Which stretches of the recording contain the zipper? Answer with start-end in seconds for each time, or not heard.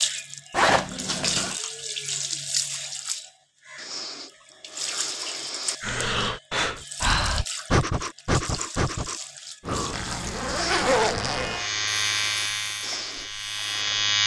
0.5-1.6, 9.9-11.7.